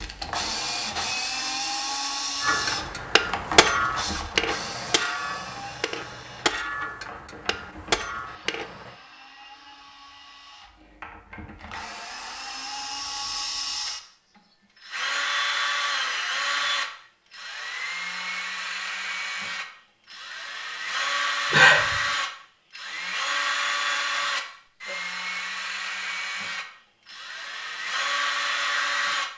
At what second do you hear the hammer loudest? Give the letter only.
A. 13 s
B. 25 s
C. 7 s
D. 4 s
D.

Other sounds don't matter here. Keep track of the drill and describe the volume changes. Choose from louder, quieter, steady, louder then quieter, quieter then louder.
quieter then louder.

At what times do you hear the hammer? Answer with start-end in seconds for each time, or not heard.
2.4-8.9.